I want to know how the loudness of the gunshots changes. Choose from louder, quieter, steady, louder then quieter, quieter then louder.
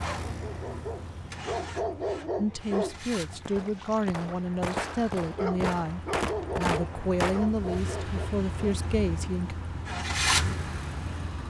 louder.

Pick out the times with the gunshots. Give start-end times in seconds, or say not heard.
3.5-7.5.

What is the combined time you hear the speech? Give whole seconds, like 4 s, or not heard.
7 s.